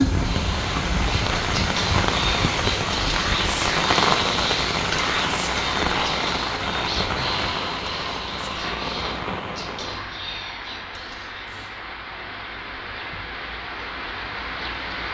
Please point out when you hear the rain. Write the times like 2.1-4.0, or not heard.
0.0-15.0.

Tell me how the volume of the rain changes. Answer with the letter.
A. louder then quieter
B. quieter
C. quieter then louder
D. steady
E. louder
B.